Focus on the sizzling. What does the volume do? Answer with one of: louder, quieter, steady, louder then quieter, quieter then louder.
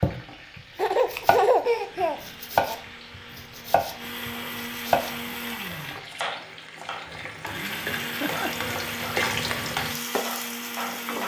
louder.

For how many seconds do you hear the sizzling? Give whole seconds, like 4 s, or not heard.
11 s.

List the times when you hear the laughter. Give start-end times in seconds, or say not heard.
0.8-2.8, 8.0-8.9.